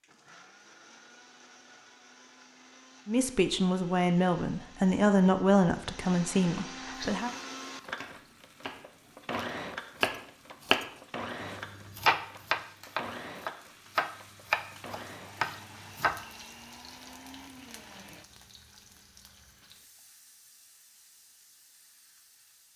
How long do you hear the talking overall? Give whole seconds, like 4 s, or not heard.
4 s.